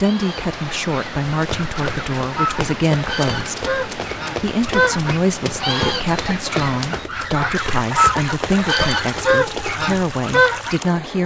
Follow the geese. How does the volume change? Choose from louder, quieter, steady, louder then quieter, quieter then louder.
louder.